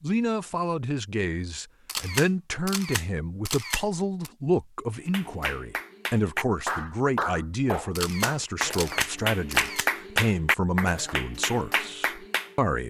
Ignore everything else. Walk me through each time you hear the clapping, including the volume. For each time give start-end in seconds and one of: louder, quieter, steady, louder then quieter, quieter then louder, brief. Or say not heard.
4.9-12.6 louder then quieter.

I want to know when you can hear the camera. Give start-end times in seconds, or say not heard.
1.9-4.3, 8.0-9.9.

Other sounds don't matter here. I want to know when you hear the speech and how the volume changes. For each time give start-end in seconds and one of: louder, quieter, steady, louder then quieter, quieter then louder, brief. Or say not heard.
0.0-12.8 steady.